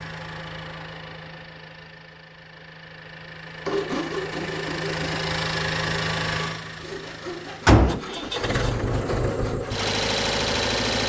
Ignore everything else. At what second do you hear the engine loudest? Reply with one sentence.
The loudest moment of the engine is at 8 seconds.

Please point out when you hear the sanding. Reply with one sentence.
The sanding can be heard from 3.6 to 9.9 s.